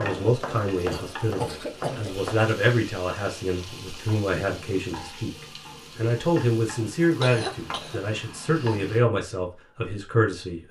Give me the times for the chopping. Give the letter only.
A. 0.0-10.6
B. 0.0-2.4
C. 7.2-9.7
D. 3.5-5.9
B.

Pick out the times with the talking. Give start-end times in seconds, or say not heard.
0.0-10.6.